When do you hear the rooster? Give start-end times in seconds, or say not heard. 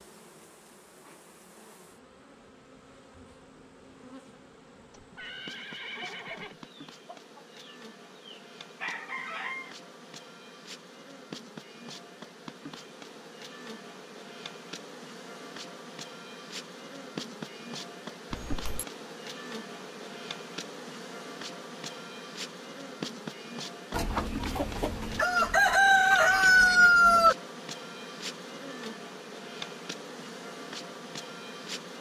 6.0-9.8, 23.9-27.4.